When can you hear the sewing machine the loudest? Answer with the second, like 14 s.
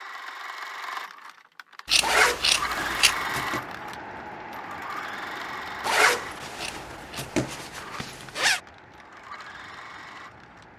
3 s.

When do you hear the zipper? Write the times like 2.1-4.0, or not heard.
2.0-3.6, 5.8-8.6.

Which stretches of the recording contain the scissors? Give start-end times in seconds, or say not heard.
1.9-3.1, 6.5-7.3.